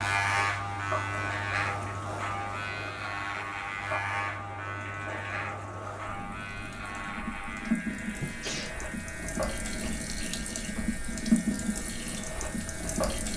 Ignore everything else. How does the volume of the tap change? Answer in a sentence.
The volume of the tap goes up.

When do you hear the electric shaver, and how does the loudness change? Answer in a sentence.
You can hear the electric shaver from 0.0 to 13.3 s, getting quieter.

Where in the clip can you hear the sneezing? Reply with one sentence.
You can hear the sneezing from 8.2 to 8.8 s.